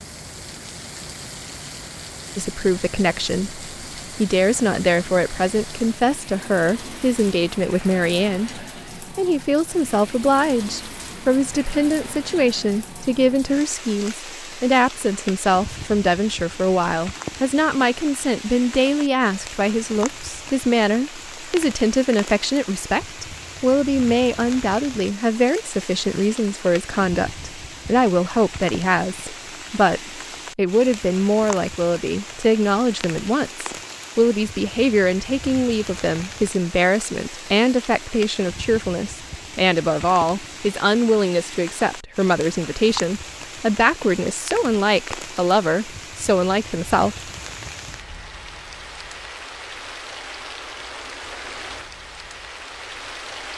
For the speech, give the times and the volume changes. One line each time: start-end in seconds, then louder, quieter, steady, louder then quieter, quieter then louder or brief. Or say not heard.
2.4-47.1 steady.